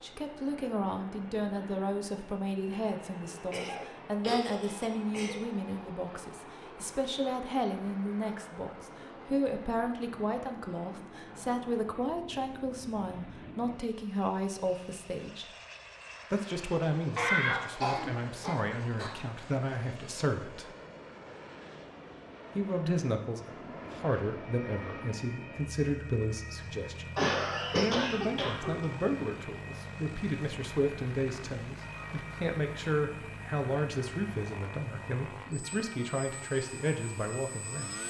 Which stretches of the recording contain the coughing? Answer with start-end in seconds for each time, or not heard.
3.5-5.3, 17.1-19.1, 27.1-28.9.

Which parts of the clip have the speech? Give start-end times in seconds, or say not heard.
0.0-15.4, 16.3-20.7, 22.6-27.1, 27.8-38.0.